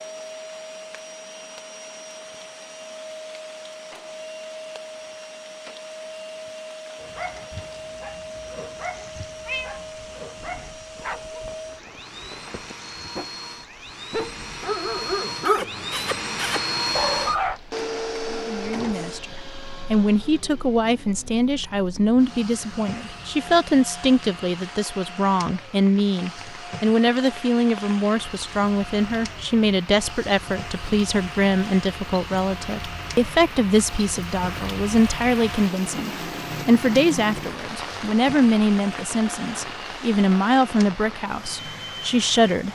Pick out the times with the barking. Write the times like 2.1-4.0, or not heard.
7.0-13.3, 14.1-17.6.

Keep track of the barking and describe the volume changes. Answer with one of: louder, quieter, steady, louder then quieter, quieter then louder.
louder.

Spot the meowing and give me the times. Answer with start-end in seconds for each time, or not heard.
9.4-9.8.